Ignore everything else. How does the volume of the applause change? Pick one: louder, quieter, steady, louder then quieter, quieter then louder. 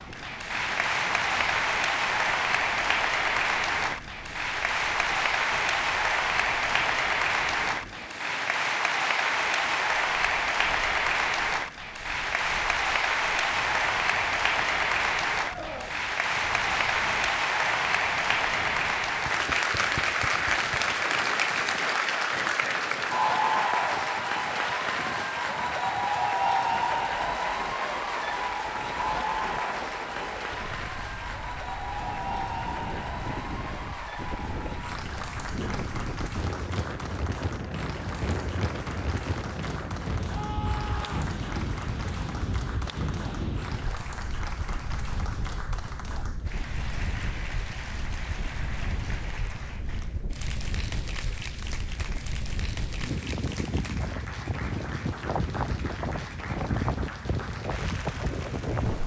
quieter.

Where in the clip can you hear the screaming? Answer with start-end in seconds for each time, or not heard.
15.4-15.9, 40.2-41.3.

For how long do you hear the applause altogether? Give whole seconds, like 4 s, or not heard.
59 s.